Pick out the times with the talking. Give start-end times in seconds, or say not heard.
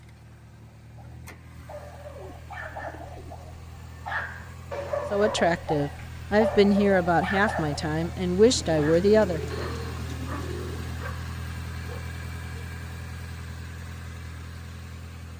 5.1-9.5.